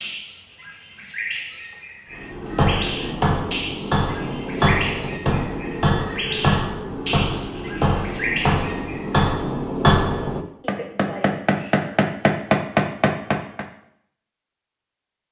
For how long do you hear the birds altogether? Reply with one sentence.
You can hear the birds for 9 seconds altogether.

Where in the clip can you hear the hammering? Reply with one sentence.
The hammering can be heard from 2.2 to 13.7 s.